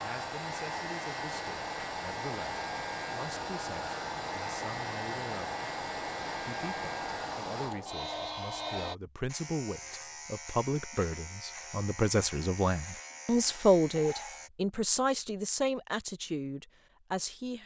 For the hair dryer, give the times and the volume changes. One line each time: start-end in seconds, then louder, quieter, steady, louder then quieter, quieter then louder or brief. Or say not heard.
0.0-8.9 steady.